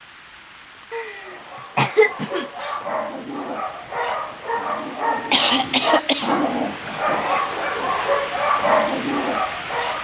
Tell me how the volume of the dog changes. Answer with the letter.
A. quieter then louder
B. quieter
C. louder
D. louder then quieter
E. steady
C.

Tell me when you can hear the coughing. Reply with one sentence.
You can hear the coughing from 0.9 to 2.8 s and from 5.2 to 6.4 s.